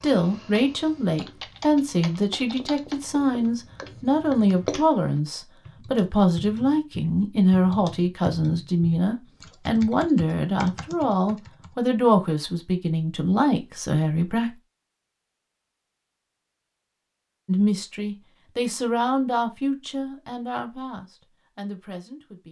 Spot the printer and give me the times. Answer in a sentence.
You can't hear the printer here.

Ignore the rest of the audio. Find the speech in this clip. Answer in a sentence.
You can hear the speech from 0.0 to 14.6 s and from 17.4 to 22.4 s.